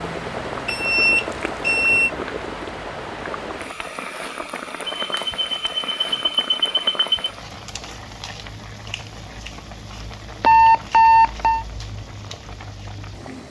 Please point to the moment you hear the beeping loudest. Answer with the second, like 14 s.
11 s.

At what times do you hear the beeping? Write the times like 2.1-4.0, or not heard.
0.7-2.1, 4.8-7.3, 10.4-11.7.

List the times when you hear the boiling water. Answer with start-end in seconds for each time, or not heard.
0.0-13.4.